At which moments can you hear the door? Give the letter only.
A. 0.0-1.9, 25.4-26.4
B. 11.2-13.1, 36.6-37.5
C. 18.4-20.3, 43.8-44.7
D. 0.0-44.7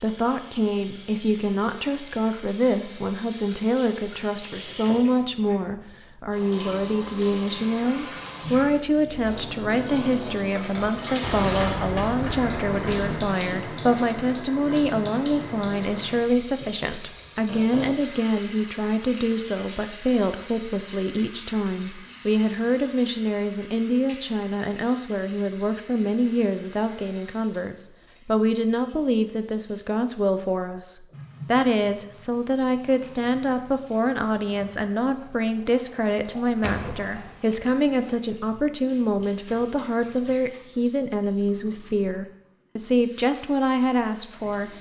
B.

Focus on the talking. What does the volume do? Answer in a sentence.
The loudness of the talking stays about the same.